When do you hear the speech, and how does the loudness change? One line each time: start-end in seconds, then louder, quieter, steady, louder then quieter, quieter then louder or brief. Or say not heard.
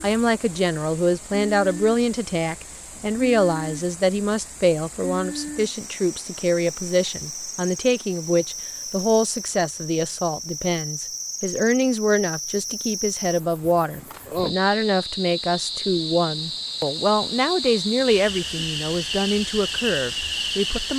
0.0-20.9 steady.